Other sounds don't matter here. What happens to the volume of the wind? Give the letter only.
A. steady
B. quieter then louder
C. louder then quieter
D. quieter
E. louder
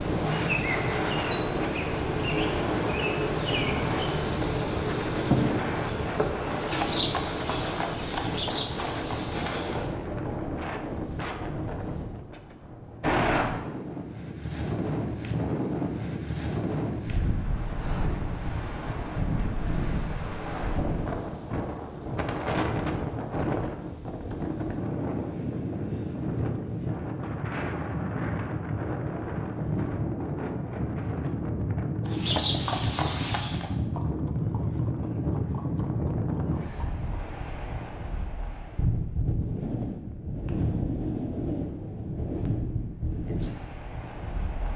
A.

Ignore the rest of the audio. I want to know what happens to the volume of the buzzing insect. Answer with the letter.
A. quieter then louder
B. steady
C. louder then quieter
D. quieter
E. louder
D.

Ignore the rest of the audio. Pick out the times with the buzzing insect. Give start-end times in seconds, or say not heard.
0.0-10.4.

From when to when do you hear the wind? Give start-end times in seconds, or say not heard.
0.0-44.7.